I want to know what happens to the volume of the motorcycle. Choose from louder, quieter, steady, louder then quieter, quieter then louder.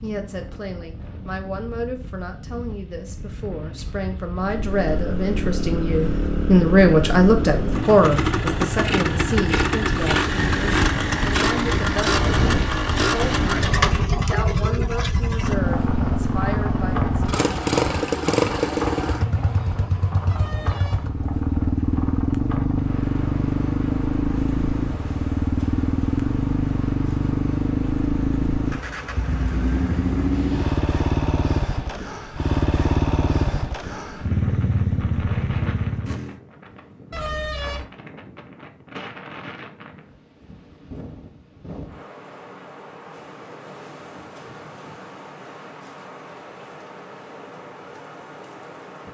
steady.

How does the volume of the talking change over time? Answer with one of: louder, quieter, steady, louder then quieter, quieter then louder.
louder then quieter.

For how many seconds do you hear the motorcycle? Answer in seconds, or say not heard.
32 s.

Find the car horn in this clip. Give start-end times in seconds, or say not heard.
20.2-21.1, 37.1-37.9.